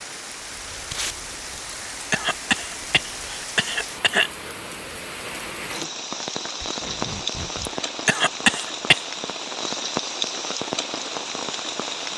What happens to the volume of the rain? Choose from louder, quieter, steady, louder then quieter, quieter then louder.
louder.